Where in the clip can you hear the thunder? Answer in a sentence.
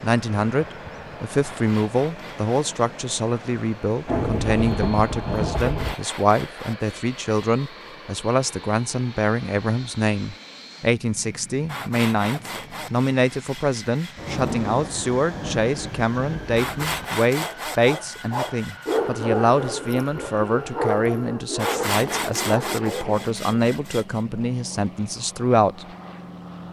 You can hear the thunder from 4.0 to 6.0 s and from 14.2 to 17.1 s.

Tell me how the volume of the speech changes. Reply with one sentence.
The volume of the speech stays about the same.